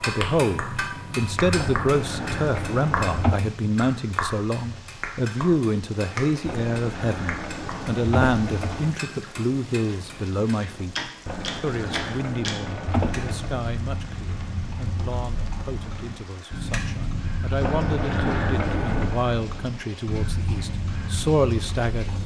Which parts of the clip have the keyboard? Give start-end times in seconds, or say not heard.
1.6-3.4, 6.5-8.9, 11.2-13.5, 17.6-19.1.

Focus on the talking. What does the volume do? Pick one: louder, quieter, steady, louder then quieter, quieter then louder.
quieter then louder.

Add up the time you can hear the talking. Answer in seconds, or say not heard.
22 s.